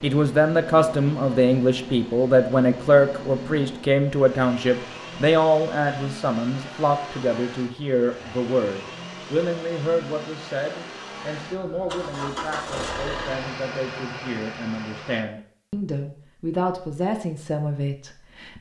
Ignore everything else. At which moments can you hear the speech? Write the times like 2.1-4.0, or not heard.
0.0-18.5.